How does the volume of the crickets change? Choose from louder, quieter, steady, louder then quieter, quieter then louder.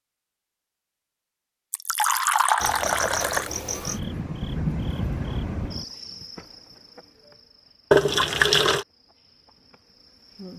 quieter.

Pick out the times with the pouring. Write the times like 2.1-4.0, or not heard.
1.7-3.5, 7.9-8.8.